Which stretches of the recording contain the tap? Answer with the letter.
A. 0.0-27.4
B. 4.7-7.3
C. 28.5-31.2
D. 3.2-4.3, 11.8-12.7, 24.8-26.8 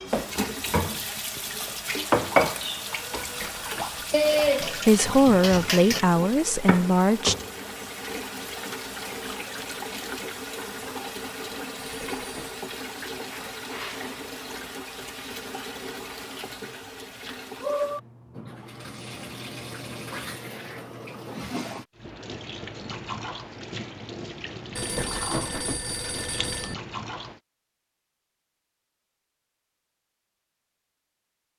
A.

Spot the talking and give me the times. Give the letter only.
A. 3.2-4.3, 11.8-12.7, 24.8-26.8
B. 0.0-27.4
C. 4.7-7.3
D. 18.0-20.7
C.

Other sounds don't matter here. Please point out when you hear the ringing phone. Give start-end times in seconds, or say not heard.
3.2-4.3, 11.8-12.7, 24.8-26.8.